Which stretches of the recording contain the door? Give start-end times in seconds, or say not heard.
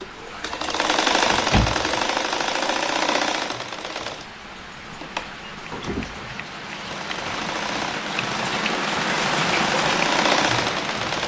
1.2-2.0, 5.7-6.3.